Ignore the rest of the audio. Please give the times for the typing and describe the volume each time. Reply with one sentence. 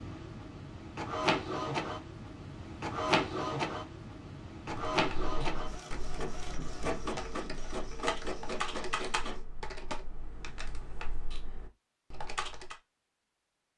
The typing can be heard from 4.9 to 12.8 s, getting louder then quieter.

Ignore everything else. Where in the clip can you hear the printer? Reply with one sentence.
The printer can be heard from 0.0 to 9.4 s.